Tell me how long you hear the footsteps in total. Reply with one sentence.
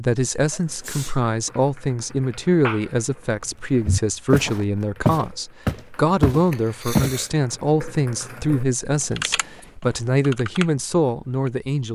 You can hear the footsteps for 4 seconds altogether.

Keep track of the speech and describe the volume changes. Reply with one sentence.
The loudness of the speech stays about the same.